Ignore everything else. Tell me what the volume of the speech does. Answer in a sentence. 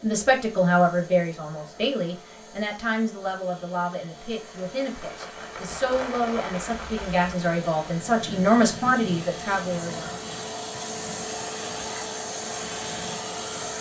The volume of the speech goes down, then up.